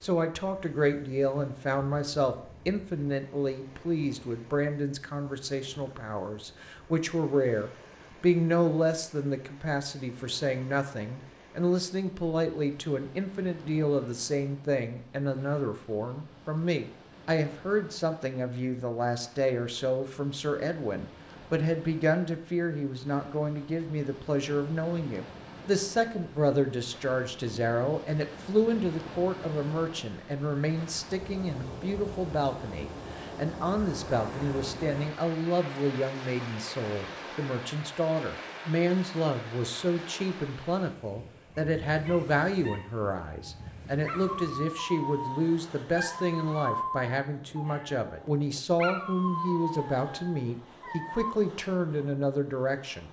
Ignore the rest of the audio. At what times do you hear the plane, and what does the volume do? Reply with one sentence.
You can't hear the plane here.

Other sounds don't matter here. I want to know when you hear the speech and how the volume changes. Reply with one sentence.
You can hear the speech from 0.0 to 53.0 s, at a steady volume.